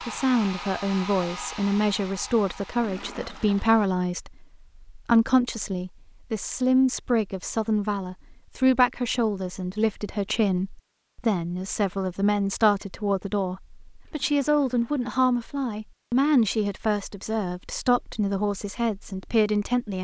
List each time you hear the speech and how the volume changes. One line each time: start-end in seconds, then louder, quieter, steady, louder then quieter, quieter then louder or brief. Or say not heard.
0.1-19.9 steady.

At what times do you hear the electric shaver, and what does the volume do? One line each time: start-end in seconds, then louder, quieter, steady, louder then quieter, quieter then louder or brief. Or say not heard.
not heard.